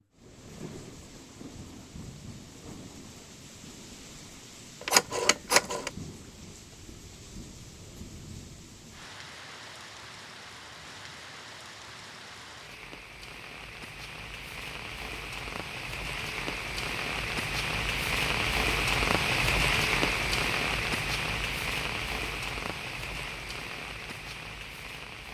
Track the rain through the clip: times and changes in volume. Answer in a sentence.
You can hear the rain from 0.0 to 25.2 s, getting louder.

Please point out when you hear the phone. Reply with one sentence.
The phone can be heard from 4.8 to 5.9 s.